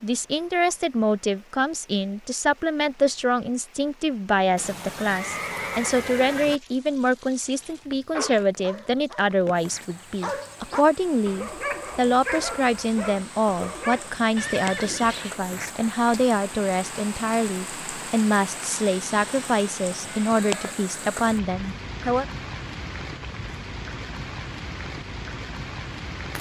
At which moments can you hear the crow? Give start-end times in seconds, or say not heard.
not heard.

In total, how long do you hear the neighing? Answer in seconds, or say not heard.
4 s.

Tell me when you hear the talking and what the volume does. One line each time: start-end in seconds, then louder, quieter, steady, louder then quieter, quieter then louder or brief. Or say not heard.
0.0-22.2 steady.